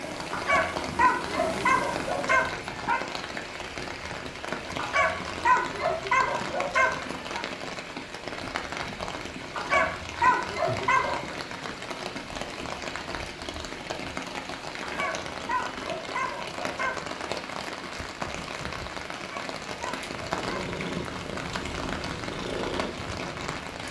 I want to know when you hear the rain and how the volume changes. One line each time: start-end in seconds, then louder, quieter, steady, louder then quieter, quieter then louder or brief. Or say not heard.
0.0-23.8 steady.